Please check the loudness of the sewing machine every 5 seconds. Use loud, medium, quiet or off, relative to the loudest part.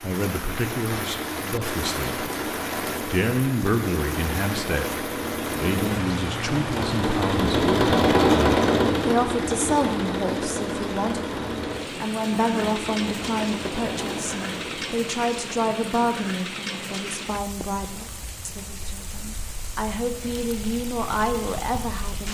medium, loud, medium, off, off.